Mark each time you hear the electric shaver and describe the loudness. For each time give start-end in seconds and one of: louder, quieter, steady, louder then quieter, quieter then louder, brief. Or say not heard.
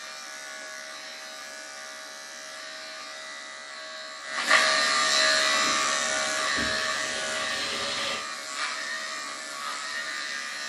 0.0-10.6 louder then quieter.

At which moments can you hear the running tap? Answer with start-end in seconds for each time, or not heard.
5.5-8.2.